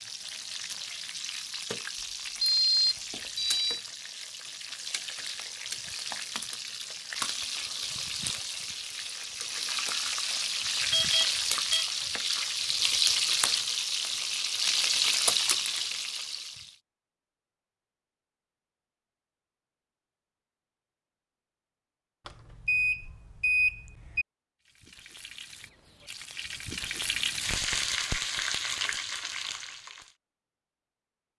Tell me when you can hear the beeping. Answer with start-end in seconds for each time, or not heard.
2.4-3.8, 10.9-11.8, 22.2-24.2.